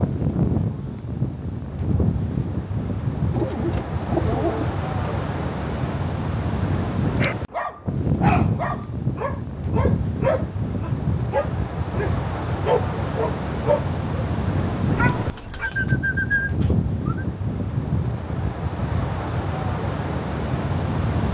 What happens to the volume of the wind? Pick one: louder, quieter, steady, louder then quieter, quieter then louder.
steady.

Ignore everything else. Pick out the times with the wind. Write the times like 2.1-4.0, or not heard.
0.0-21.2.